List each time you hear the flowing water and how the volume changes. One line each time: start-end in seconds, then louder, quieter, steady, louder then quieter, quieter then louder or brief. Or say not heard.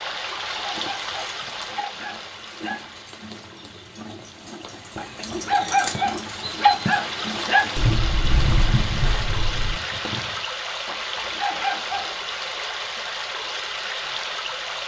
0.0-14.8 quieter then louder.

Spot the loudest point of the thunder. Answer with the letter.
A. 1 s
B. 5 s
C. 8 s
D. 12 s
C.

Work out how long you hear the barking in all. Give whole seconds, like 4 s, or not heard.
7 s.